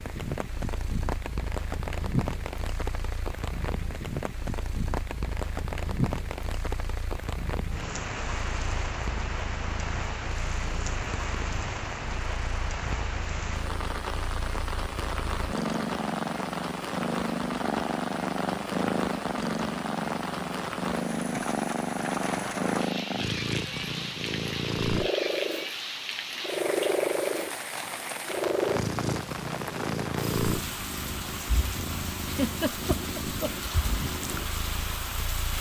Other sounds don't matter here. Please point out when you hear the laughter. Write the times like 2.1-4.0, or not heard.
32.2-33.7.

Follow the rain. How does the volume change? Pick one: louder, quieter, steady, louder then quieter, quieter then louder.
steady.